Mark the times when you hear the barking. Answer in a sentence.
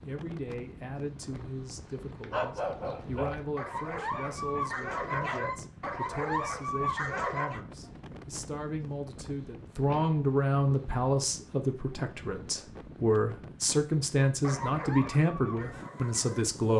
The barking can be heard from 1.3 to 7.6 s and from 14.2 to 16.4 s.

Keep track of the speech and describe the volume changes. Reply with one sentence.
The loudness of the speech goes up.